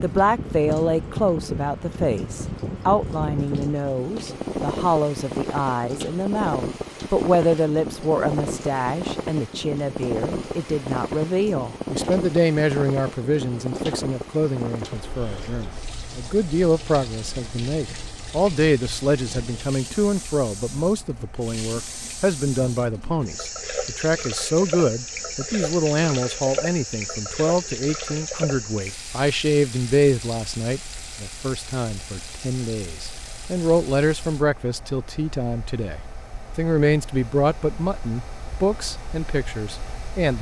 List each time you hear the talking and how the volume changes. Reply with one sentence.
The talking can be heard from 0.0 to 40.3 s, at a steady volume.